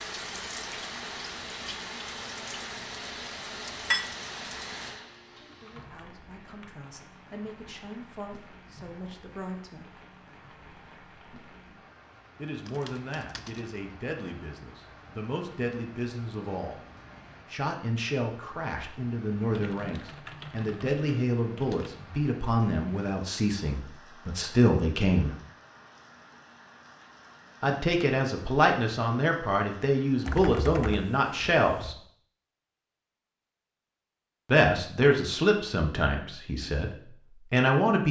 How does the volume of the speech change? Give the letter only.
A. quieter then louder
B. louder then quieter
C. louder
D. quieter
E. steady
C.